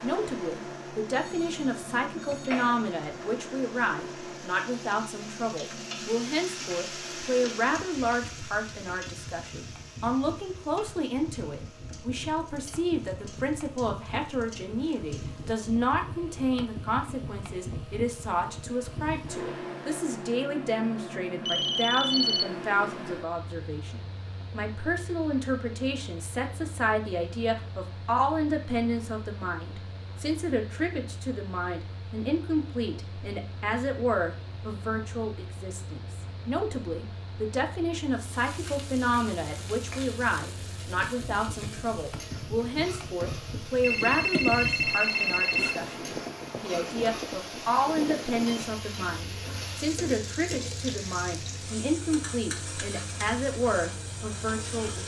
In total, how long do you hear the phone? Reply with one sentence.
The phone can be heard for 5 seconds in total.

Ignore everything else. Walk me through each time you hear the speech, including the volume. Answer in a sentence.
You can hear the speech from 0.0 to 55.0 s, at a steady volume.